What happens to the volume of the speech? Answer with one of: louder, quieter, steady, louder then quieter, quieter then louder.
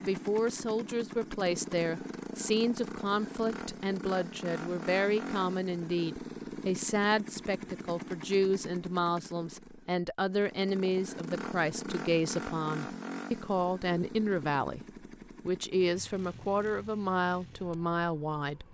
steady.